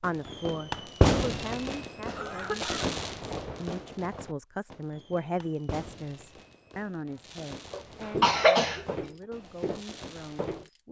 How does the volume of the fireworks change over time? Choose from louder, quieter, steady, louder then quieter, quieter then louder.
quieter.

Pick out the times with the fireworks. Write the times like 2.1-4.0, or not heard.
0.0-10.7.